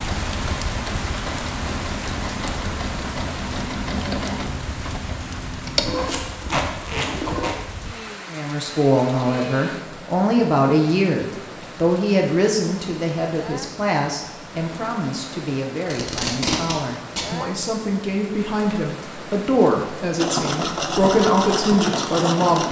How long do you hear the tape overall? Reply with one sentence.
The tape can be heard for 3 seconds in total.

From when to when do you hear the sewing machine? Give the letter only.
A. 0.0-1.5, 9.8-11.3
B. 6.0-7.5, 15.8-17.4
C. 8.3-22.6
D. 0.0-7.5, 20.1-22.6
D.